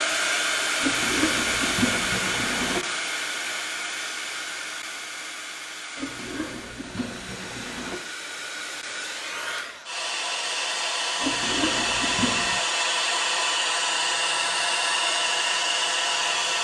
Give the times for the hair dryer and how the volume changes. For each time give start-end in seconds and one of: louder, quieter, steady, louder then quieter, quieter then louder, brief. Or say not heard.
0.0-16.5 quieter then louder.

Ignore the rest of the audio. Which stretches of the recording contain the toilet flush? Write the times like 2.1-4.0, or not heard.
0.8-2.8, 6.0-8.0, 11.2-12.6.